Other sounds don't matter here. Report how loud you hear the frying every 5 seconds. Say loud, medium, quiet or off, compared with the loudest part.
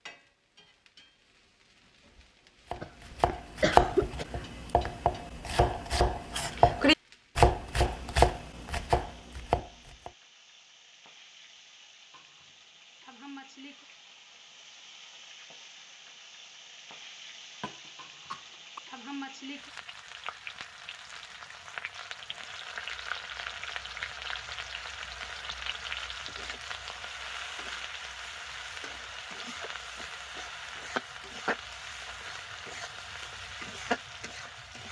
quiet, quiet, quiet, medium, loud, loud, loud.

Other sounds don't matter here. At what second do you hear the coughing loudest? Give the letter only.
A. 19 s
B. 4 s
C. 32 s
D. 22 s
B.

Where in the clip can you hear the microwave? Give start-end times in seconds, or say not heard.
not heard.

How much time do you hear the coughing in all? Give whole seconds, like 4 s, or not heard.
3 s.